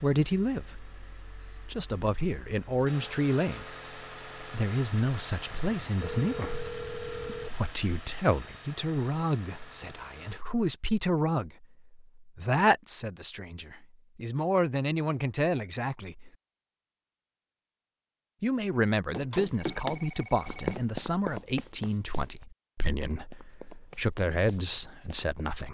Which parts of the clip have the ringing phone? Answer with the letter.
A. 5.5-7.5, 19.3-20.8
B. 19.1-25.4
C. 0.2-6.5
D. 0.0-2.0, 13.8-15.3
A.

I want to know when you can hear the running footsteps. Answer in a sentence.
The running footsteps can be heard from 19.1 to 25.4 s.